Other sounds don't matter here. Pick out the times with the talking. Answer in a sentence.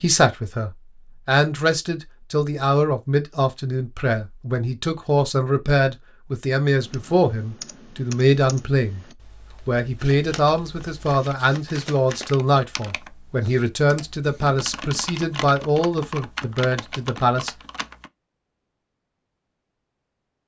You can hear the talking from 0.0 to 9.0 s and from 9.7 to 17.6 s.